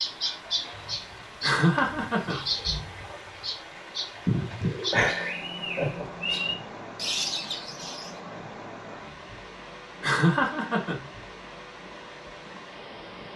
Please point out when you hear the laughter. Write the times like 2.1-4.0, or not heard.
1.4-2.5, 4.9-6.0, 10.0-11.1.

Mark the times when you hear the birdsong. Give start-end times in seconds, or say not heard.
0.0-8.2.